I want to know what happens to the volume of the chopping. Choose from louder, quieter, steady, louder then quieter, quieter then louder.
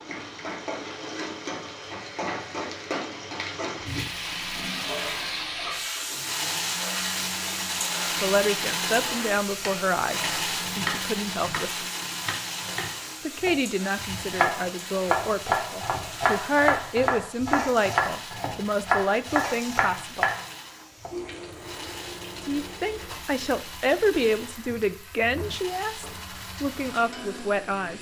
louder.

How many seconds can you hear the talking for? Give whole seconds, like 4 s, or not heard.
16 s.